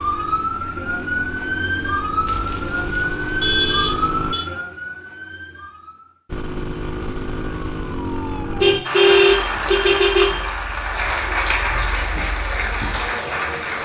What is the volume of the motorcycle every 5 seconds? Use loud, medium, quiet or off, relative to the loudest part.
loud, loud, off.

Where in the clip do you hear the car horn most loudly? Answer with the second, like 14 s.
9 s.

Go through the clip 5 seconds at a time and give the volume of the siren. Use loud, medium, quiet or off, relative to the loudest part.
loud, quiet, quiet.